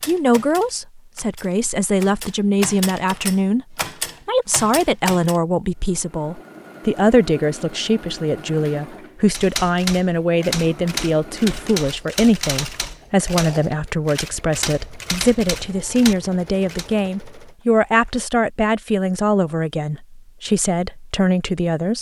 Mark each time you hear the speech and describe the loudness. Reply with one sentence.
The speech can be heard from 0.1 to 21.9 s, at a steady volume.